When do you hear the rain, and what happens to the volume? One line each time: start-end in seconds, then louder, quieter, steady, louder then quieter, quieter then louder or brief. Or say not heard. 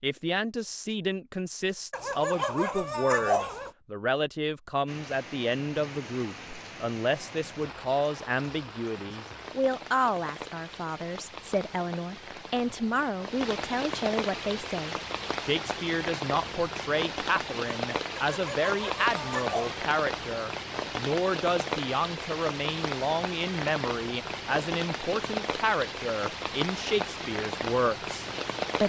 4.8-28.8 louder.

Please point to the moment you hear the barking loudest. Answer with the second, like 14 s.
3 s.